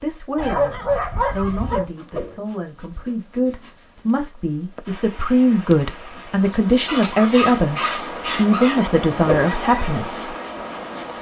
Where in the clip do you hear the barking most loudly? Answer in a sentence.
The volume of the barking peaks at 1 second.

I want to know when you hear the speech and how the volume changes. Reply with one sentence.
You can hear the speech from 0.0 to 10.3 s, getting louder.